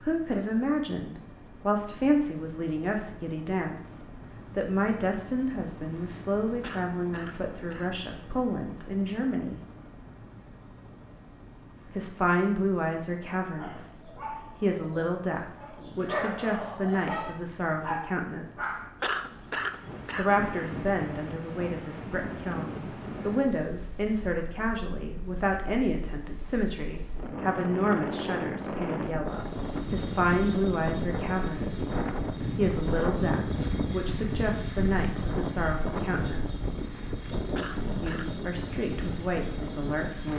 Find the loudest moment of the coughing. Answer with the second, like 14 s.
19 s.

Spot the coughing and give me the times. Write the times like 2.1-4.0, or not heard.
6.6-8.0, 19.0-20.4, 37.5-38.4.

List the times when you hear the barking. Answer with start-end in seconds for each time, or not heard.
13.6-18.9.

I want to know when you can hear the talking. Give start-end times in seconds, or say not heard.
0.0-9.6, 11.8-18.8, 20.1-36.8, 38.0-40.3.